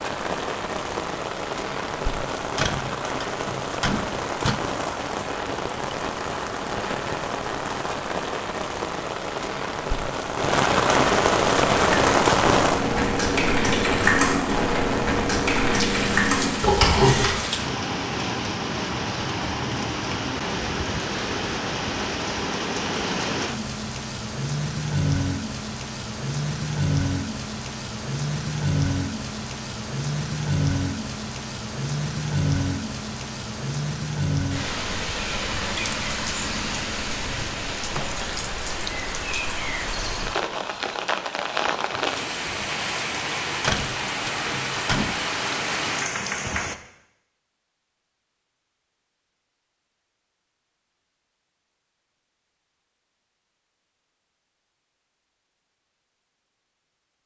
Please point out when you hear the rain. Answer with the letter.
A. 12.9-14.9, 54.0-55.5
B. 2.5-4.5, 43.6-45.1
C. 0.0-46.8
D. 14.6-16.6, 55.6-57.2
C.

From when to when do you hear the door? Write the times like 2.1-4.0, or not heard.
2.5-4.5, 43.6-45.1.